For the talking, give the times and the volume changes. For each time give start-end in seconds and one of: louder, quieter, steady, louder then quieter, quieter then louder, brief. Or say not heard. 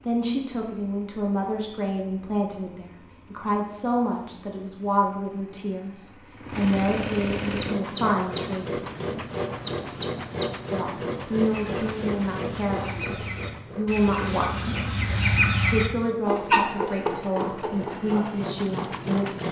0.1-8.8 steady
10.7-19.4 steady.